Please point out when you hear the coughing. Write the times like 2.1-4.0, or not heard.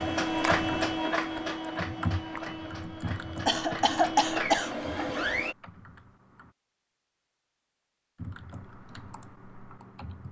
3.5-4.8.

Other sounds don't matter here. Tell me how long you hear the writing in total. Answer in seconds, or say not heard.
not heard.